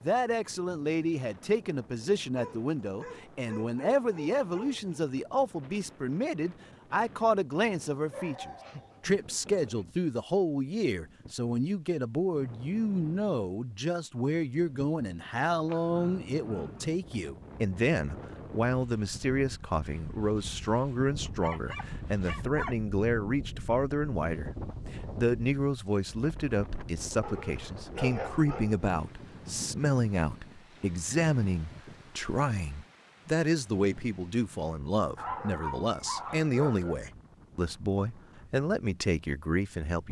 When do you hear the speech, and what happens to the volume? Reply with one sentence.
The speech can be heard from 0.0 to 40.0 s, at a steady volume.